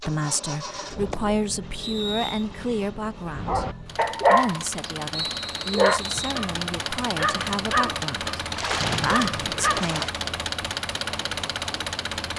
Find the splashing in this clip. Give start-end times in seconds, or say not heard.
0.9-1.4, 8.5-10.2.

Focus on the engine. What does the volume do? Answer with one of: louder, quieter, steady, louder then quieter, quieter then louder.
louder.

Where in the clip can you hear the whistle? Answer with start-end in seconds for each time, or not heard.
1.8-2.5, 5.1-6.4, 8.8-9.6.